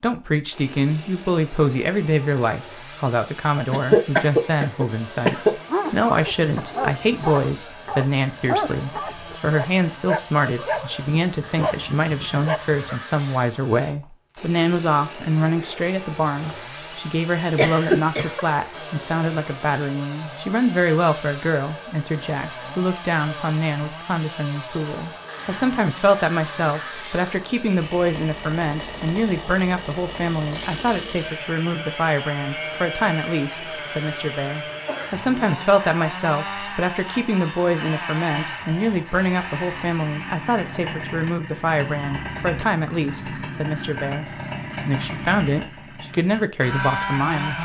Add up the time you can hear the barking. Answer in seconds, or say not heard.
7 s.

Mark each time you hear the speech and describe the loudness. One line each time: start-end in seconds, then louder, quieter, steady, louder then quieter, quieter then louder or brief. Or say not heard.
0.0-47.6 steady.